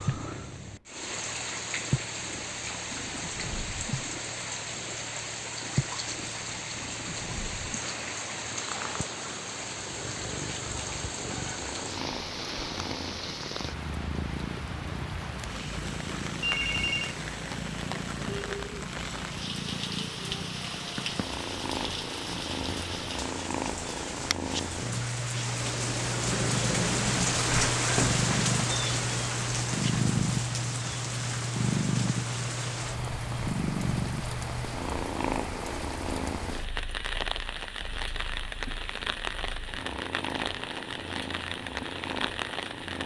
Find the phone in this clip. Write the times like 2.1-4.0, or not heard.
16.4-17.1.